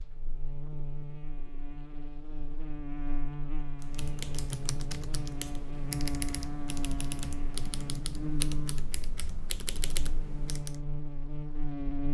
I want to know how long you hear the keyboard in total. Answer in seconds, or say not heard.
7 s.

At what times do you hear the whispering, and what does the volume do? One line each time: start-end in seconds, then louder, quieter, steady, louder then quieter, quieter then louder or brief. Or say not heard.
not heard.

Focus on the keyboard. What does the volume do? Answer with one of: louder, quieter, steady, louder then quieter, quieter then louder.
steady.